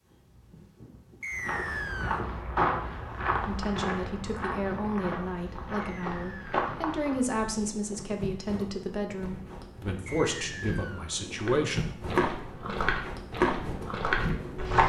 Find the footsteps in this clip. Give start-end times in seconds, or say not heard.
1.3-7.2, 11.3-14.8.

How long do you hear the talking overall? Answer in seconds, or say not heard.
9 s.